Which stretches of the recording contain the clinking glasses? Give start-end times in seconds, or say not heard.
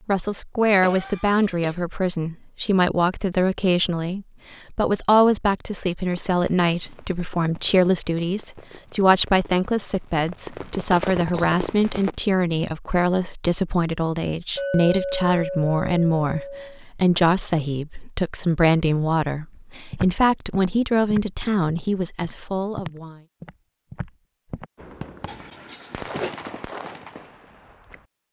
14.6-16.8.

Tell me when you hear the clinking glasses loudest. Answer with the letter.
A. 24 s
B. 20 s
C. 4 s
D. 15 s
D.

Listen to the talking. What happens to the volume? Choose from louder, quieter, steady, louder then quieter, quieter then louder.
steady.